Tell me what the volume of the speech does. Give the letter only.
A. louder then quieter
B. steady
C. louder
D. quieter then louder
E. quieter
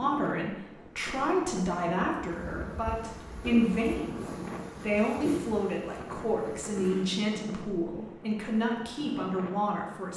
B.